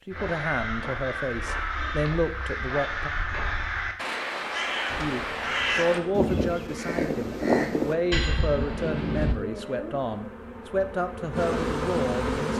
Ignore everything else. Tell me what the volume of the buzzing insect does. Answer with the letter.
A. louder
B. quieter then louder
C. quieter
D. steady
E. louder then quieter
A.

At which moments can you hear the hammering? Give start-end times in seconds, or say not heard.
not heard.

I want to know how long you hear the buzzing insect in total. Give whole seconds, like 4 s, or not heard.
8 s.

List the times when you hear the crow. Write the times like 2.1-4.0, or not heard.
0.1-9.3.